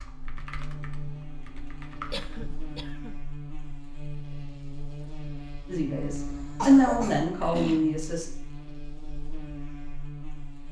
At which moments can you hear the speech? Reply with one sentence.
The speech can be heard from 5.7 to 8.2 s.